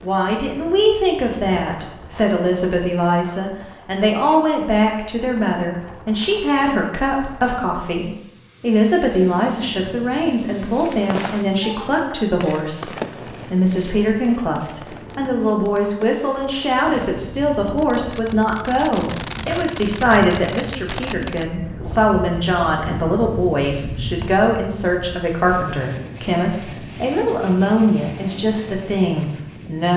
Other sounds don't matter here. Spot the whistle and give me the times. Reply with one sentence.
You can't hear the whistle here.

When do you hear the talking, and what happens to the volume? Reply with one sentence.
The talking can be heard from 0.0 to 29.9 s, at a steady volume.